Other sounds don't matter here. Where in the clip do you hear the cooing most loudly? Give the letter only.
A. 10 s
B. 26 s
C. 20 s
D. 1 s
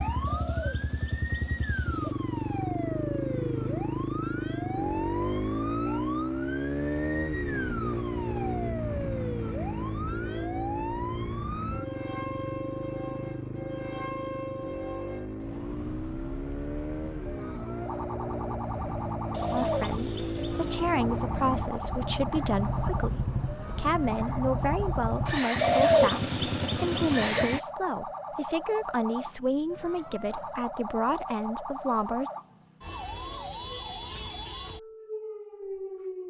B.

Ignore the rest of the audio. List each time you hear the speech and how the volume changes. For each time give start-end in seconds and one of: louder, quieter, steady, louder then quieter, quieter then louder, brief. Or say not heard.
19.5-32.3 steady.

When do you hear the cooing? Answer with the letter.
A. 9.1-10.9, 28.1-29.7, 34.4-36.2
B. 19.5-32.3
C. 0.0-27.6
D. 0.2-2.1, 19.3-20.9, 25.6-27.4
D.